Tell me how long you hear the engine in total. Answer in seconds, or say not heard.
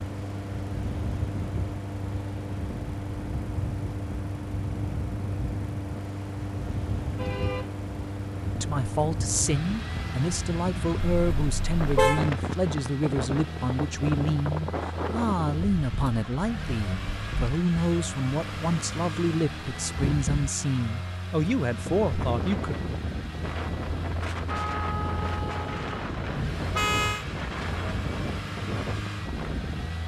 30 s.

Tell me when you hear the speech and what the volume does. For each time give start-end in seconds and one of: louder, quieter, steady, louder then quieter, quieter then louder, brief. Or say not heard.
8.6-22.8 steady.